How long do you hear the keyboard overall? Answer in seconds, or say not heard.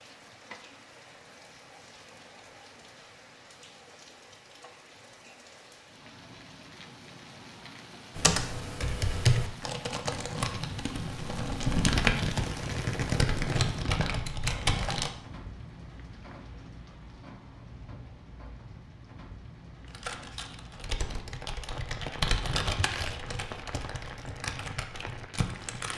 13 s.